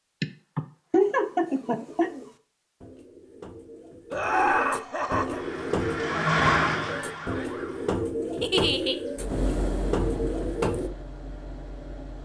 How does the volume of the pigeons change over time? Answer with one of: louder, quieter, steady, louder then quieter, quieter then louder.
louder.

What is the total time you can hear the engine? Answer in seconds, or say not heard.
3 s.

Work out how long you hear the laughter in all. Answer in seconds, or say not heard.
4 s.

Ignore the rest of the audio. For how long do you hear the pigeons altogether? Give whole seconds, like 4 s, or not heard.
10 s.